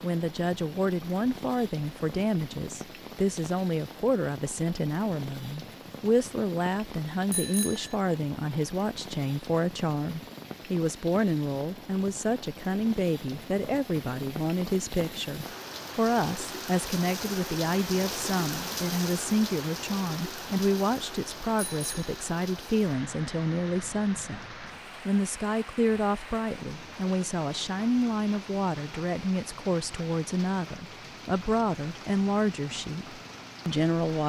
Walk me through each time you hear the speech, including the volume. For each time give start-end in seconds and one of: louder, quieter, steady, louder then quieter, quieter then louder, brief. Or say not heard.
0.0-34.2 steady.